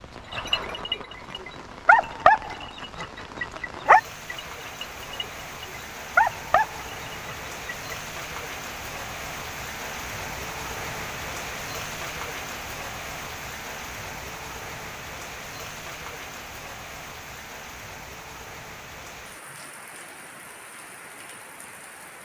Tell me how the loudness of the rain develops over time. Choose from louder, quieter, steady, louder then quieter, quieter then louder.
louder then quieter.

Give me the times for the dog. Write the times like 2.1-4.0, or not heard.
0.3-8.0.